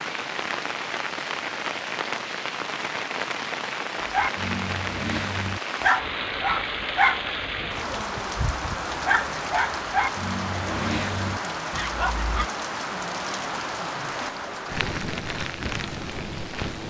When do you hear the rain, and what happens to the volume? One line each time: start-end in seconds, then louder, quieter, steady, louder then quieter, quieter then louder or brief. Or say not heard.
0.0-16.8 steady.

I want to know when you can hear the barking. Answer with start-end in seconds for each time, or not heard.
4.0-12.5.